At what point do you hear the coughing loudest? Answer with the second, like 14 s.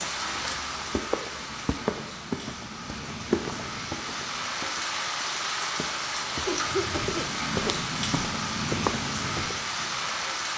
7 s.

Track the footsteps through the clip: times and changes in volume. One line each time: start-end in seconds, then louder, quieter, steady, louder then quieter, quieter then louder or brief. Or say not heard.
0.0-9.6 quieter then louder.